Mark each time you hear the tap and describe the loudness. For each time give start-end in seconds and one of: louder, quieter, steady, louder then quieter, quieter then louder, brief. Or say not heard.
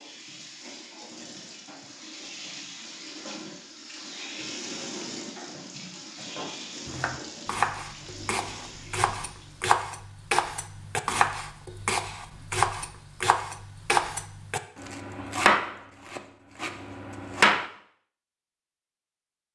0.0-9.7 louder then quieter.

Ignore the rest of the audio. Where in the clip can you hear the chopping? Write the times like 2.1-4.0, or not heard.
6.8-17.6.